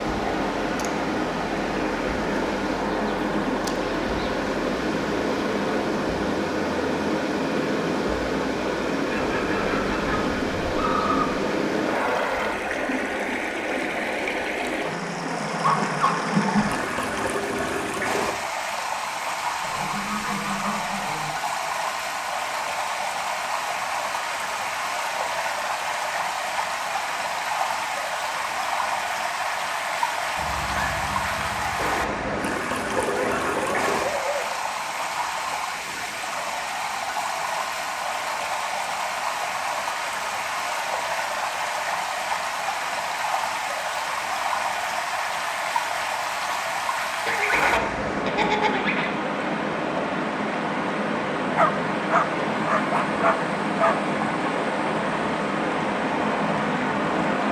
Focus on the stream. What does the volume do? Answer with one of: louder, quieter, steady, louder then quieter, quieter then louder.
steady.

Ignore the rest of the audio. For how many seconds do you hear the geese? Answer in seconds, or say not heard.
8 s.